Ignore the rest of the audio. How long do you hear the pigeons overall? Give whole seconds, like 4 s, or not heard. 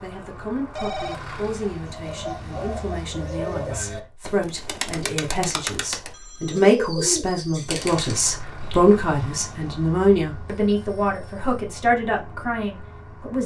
7 s.